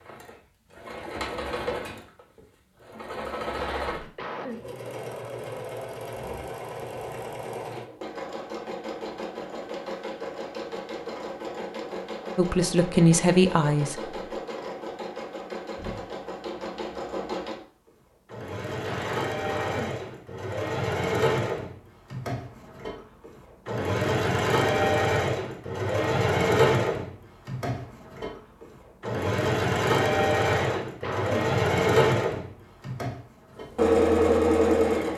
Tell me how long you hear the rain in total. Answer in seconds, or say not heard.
not heard.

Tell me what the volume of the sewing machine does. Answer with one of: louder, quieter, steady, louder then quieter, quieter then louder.
louder.